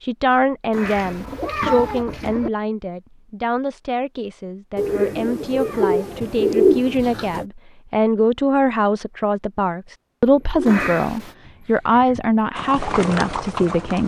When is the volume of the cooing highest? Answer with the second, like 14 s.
7 s.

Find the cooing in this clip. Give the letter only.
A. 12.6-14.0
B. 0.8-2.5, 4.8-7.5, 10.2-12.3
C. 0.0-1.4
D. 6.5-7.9
B.